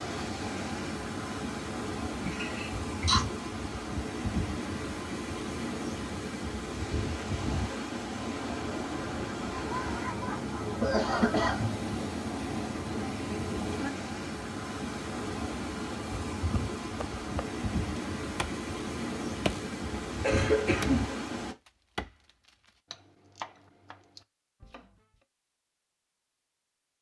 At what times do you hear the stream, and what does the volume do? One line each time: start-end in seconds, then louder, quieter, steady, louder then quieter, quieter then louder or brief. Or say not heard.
0.0-21.6 steady.